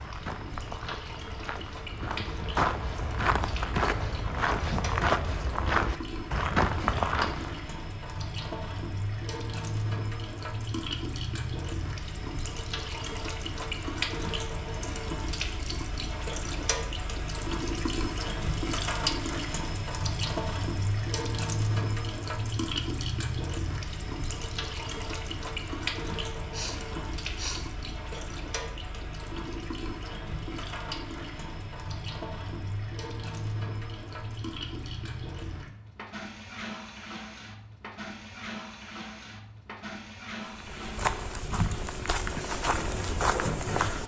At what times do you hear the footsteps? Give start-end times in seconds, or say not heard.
0.0-7.7, 40.4-44.0.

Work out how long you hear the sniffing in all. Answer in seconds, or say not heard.
2 s.